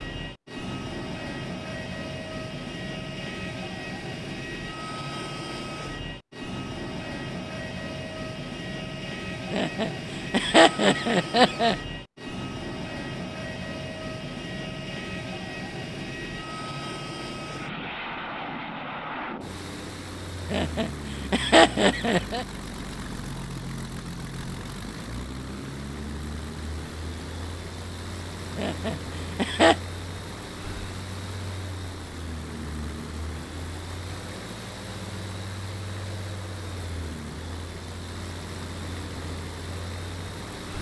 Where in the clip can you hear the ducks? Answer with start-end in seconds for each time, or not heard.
not heard.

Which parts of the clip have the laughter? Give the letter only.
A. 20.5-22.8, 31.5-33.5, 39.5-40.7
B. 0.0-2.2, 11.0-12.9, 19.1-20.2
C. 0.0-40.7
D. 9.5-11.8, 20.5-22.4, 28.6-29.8
D.